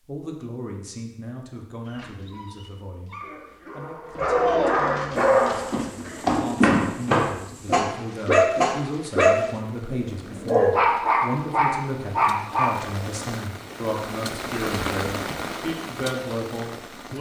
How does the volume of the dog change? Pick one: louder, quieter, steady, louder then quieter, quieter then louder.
louder.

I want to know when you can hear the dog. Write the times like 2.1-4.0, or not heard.
1.9-13.2.